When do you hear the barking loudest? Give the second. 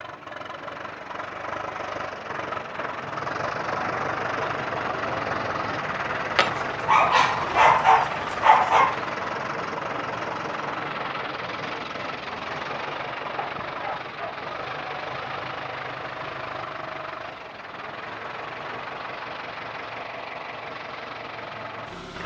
8 s.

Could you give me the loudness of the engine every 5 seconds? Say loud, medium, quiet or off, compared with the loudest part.
loud, loud, loud, medium, medium.